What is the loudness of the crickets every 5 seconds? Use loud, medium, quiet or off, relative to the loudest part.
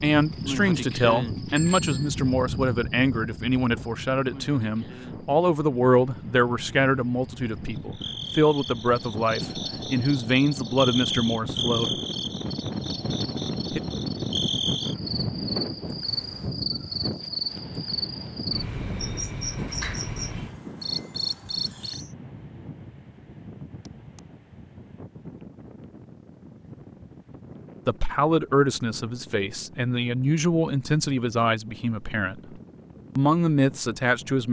loud, medium, loud, loud, loud, off, off.